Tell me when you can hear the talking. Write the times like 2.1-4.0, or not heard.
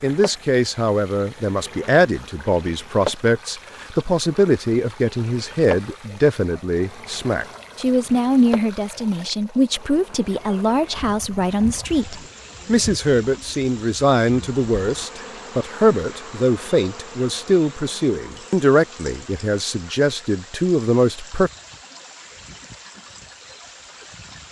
0.0-21.5.